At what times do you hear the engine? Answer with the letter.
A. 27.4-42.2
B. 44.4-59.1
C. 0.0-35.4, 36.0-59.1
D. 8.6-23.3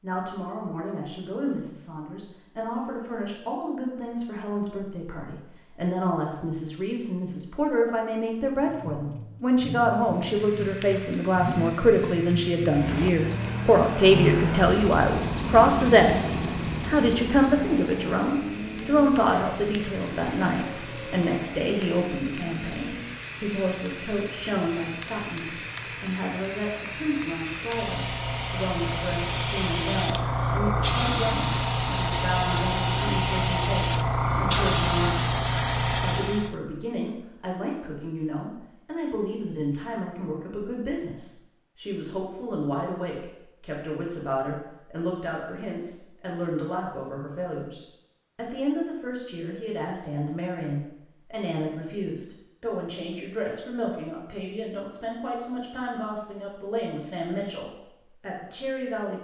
D.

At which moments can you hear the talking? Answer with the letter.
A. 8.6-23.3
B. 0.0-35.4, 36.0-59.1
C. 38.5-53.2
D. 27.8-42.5
B.